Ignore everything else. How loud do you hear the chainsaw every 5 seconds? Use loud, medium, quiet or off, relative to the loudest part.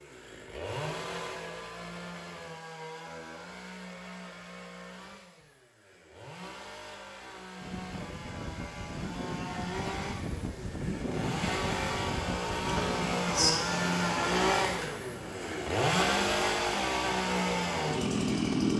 quiet, quiet, loud, loud.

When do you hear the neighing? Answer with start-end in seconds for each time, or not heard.
12.7-13.5.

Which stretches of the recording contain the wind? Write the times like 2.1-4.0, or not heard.
7.6-18.7.